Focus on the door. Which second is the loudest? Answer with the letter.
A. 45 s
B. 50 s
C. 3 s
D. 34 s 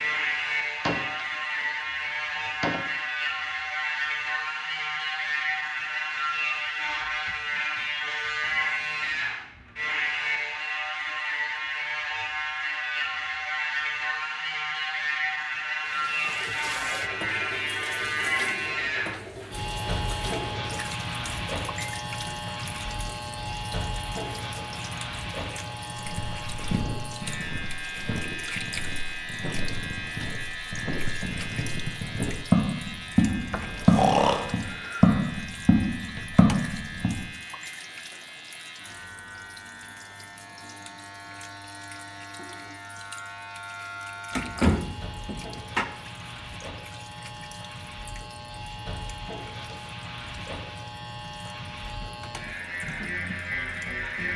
A.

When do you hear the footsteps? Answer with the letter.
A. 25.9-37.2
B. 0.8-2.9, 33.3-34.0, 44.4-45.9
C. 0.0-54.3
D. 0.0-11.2
A.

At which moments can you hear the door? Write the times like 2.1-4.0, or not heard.
0.8-2.9, 33.3-34.0, 44.4-45.9.